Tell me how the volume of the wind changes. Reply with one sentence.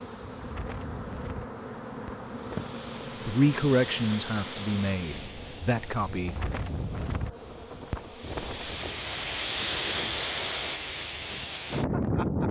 The volume of the wind goes up.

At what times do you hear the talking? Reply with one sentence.
The talking can be heard from 3.2 to 6.5 s.